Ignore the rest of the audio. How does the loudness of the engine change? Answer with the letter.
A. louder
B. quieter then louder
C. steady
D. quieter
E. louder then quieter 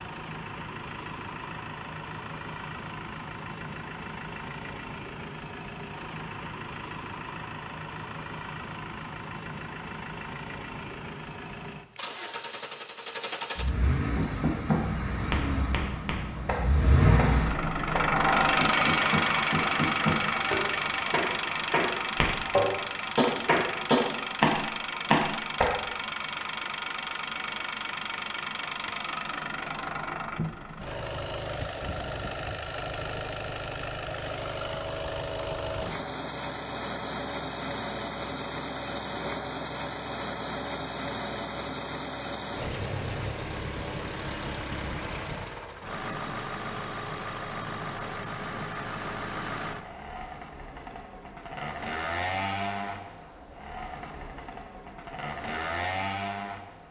E.